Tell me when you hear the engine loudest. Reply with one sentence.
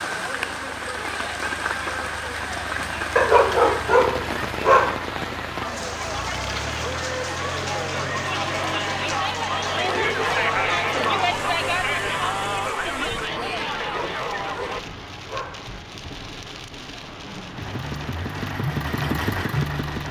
The volume of the engine peaks at 19 seconds.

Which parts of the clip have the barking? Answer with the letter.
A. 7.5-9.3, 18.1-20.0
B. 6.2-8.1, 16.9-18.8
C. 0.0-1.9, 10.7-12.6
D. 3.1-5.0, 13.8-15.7
D.